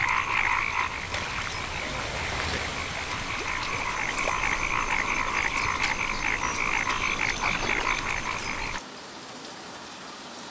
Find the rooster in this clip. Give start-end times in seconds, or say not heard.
not heard.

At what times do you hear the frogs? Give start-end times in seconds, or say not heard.
0.0-8.8.